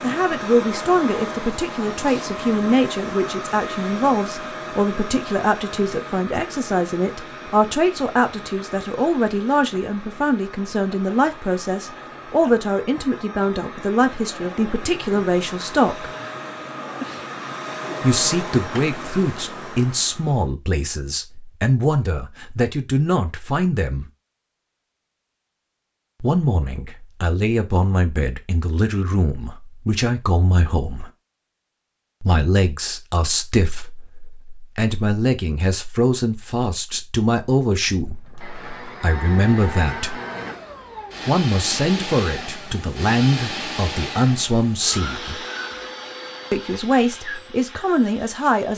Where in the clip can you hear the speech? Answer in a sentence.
The speech can be heard from 0.0 to 16.1 s, from 18.0 to 24.1 s, from 26.2 to 31.1 s, from 32.2 to 40.2 s, from 41.2 to 45.4 s and from 46.5 to 48.7 s.